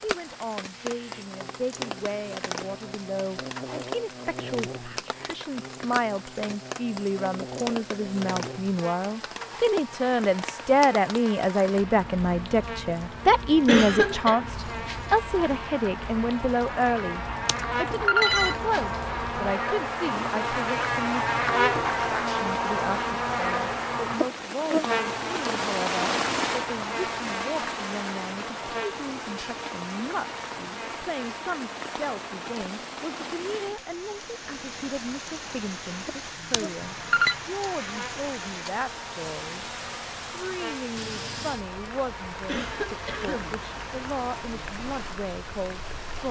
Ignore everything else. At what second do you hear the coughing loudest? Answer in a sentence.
The loudest moment of the coughing is at 14 seconds.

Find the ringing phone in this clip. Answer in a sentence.
You can hear the ringing phone from 17.4 to 18.6 s and from 36.5 to 37.4 s.